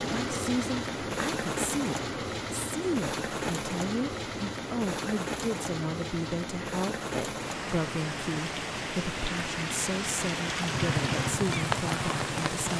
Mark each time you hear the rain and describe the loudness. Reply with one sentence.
The rain can be heard from 0.0 to 12.7 s, at a steady volume.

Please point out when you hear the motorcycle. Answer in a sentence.
The motorcycle can be heard from 10.7 to 12.7 s.